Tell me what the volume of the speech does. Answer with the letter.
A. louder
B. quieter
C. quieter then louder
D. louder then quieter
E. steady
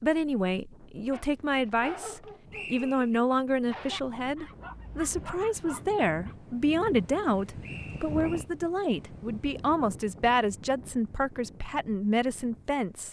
E.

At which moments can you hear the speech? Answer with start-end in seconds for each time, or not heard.
0.0-13.0.